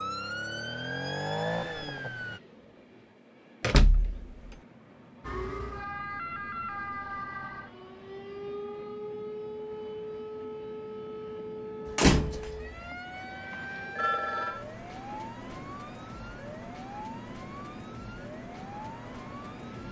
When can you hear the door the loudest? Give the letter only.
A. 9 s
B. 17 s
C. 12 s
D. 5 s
C.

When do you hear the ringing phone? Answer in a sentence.
The ringing phone can be heard from 13.5 to 14.7 s.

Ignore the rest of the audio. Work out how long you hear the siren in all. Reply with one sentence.
You can hear the siren for 17 seconds altogether.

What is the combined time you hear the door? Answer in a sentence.
The door can be heard for 2 seconds in total.